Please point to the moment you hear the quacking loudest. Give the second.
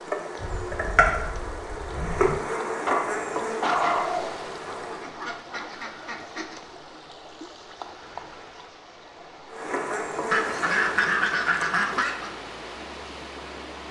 11 s.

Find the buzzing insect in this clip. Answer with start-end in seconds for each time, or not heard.
0.0-5.1, 9.5-11.3.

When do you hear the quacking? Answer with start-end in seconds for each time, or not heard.
0.3-2.4, 4.8-6.6, 10.3-12.3.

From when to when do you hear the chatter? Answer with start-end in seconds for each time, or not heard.
not heard.